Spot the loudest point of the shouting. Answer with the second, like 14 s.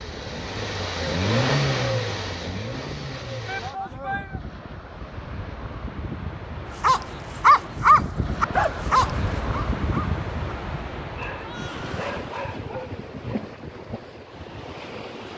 4 s.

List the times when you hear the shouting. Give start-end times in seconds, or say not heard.
3.5-4.4, 11.3-12.2.